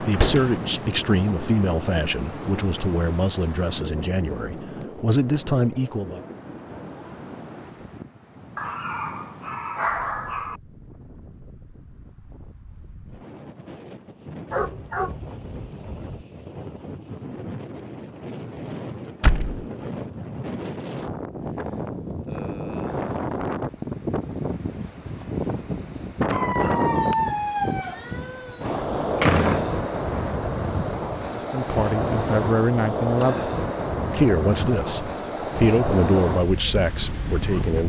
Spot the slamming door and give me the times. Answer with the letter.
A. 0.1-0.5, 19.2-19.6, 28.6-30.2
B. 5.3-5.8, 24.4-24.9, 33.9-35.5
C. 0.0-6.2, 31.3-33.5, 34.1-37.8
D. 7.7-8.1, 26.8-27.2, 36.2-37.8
A.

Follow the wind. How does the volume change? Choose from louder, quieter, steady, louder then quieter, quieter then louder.
quieter then louder.